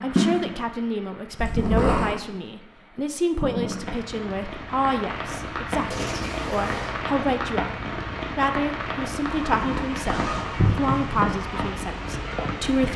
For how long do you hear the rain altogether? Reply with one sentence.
You can hear the rain for 13 seconds altogether.